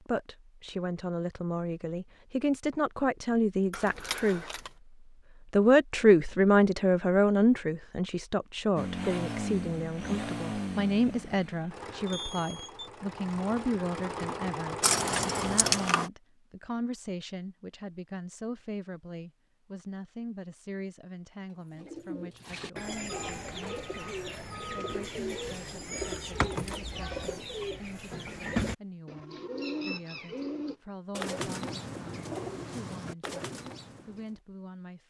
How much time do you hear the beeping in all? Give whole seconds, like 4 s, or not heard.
3 s.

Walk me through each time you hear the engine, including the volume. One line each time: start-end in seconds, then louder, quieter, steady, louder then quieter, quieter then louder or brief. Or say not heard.
8.8-15.9 quieter then louder.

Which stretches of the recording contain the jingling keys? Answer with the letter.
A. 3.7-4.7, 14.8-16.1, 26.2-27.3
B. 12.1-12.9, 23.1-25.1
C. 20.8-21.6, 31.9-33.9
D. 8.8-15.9
A.